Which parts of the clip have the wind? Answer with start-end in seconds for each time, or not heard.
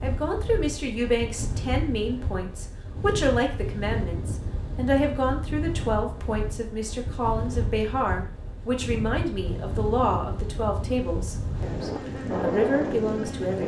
0.0-13.6.